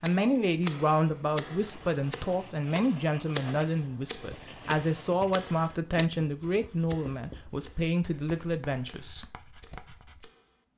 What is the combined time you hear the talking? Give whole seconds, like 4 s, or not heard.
9 s.